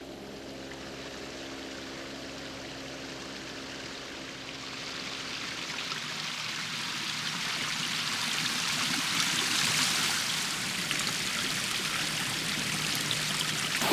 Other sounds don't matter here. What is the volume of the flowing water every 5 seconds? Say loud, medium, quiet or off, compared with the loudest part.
quiet, loud, loud.